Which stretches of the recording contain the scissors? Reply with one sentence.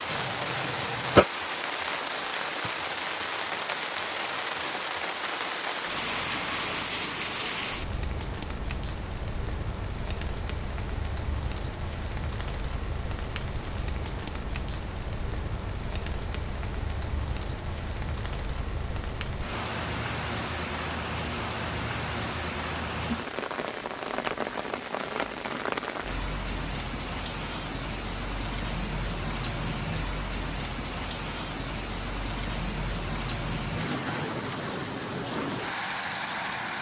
The scissors can be heard from 0.1 to 1.2 s.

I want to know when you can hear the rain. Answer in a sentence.
The rain can be heard from 0.0 to 36.7 s.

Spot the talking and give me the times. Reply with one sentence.
You can't hear the talking here.